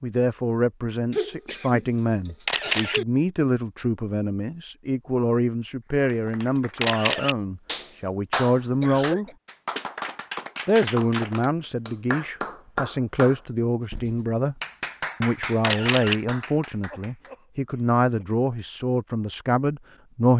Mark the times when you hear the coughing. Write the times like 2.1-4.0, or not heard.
1.1-3.0, 8.8-9.3, 16.9-18.2.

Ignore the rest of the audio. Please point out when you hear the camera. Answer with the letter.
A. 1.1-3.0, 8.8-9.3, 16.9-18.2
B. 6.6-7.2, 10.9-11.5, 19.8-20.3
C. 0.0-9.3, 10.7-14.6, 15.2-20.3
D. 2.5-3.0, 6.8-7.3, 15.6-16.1
D.